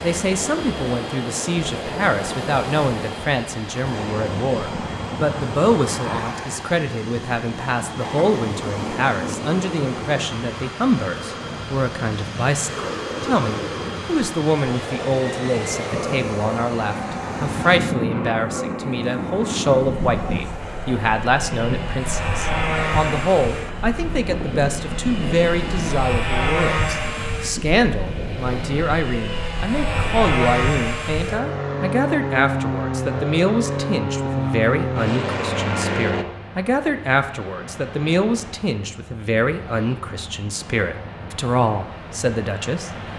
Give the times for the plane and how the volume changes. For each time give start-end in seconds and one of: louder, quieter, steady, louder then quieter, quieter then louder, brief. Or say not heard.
0.0-36.2 louder.